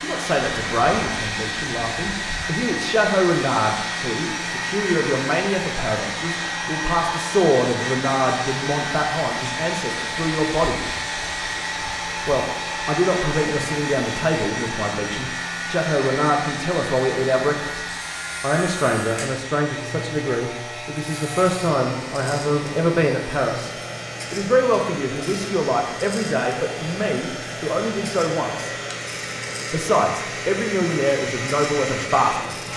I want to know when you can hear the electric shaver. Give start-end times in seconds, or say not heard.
0.0-32.7.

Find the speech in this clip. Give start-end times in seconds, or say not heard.
0.0-10.8, 12.2-23.7, 24.3-28.8, 29.7-32.5.